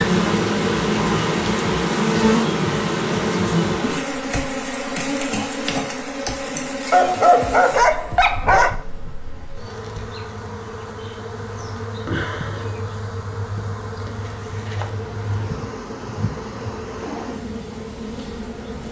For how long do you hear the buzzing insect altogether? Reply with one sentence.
You can hear the buzzing insect for 19 seconds altogether.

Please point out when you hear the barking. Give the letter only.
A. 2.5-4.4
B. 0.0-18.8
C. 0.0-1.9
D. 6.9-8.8
D.